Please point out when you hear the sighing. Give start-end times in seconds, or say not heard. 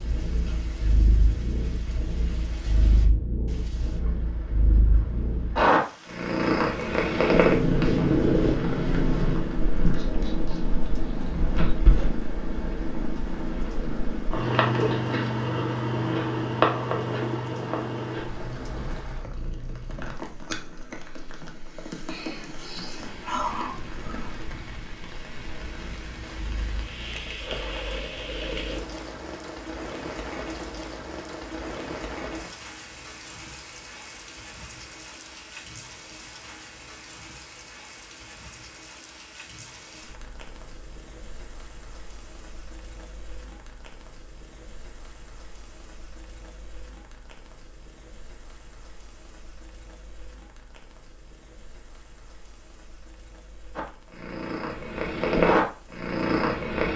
22.1-24.4.